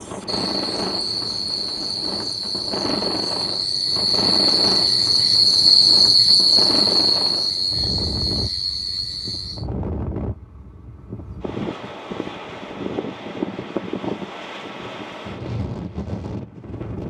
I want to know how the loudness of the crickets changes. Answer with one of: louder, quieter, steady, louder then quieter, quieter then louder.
louder then quieter.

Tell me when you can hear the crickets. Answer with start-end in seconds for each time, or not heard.
0.0-9.7.